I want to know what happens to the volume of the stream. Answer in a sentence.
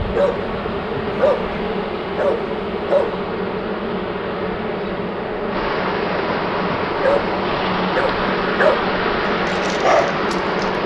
The volume of the stream goes up.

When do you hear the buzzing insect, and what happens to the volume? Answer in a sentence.
You can hear the buzzing insect from 0.0 to 10.8 s, at a steady volume.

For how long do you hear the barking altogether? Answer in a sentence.
The barking can be heard for 7 seconds in total.